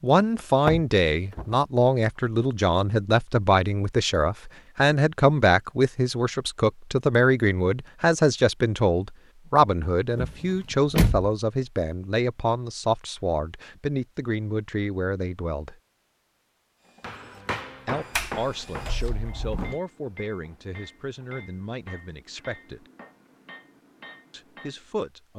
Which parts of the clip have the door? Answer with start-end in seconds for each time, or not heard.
0.7-1.6, 10.2-11.3, 18.1-19.8.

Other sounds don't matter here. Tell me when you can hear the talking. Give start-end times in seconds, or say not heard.
0.0-15.8, 17.9-22.9, 24.3-25.3.